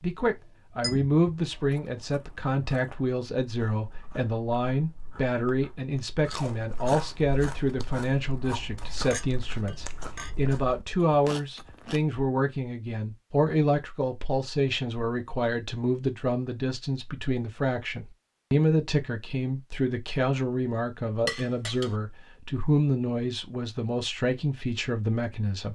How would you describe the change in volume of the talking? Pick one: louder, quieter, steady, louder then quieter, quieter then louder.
steady.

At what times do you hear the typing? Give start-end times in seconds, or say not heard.
not heard.